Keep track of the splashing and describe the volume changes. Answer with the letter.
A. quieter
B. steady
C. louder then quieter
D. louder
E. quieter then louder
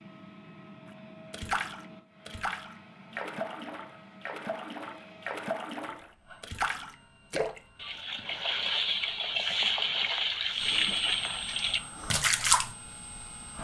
D.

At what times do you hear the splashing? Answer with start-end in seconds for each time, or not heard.
1.3-12.7.